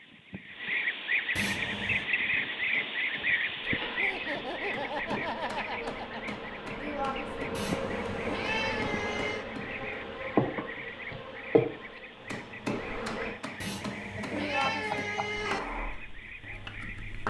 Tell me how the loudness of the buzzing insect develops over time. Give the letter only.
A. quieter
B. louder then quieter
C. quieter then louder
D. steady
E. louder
E.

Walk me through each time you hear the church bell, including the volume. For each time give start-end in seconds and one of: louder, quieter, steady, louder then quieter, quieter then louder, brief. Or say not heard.
not heard.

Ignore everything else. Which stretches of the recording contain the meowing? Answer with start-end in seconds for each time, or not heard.
1.4-2.0, 7.5-9.4, 13.6-15.6.